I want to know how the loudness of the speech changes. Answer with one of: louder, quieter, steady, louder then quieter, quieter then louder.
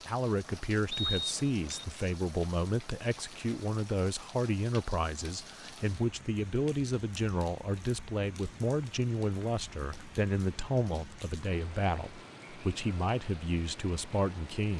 steady.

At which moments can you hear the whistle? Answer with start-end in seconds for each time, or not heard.
0.9-1.9.